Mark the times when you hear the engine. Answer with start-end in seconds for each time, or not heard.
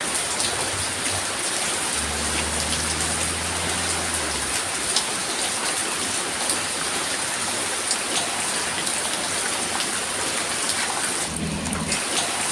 1.9-4.5.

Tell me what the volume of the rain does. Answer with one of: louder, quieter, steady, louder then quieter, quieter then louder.
steady.